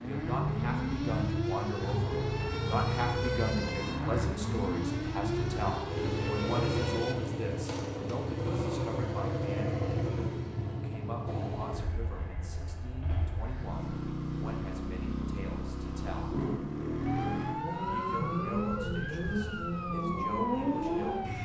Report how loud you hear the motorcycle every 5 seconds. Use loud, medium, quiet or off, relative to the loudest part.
loud, loud, medium, loud, loud.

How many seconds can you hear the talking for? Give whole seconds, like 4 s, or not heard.
20 s.